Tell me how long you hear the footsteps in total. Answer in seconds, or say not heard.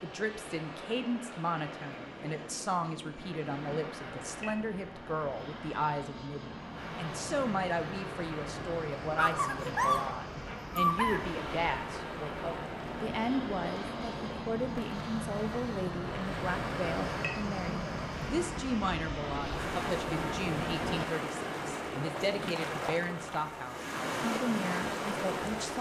not heard.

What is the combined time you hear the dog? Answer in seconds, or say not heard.
2 s.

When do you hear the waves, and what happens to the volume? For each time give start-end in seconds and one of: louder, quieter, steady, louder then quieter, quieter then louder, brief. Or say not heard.
0.0-25.7 louder.